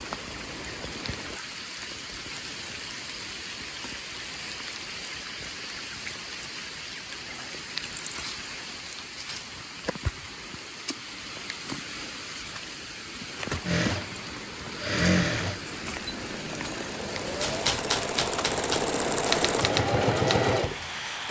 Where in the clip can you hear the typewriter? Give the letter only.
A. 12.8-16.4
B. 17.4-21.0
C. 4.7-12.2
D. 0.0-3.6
B.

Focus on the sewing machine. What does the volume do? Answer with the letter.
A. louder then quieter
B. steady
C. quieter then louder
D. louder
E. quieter
C.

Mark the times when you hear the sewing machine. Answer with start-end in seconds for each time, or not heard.
13.7-21.2.